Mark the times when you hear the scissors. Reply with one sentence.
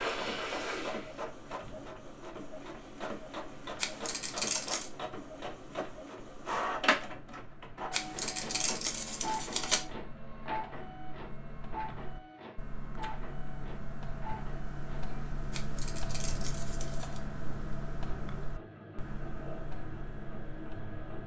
You can hear the scissors from 3.8 to 4.9 s, from 7.9 to 9.8 s and from 15.5 to 17.2 s.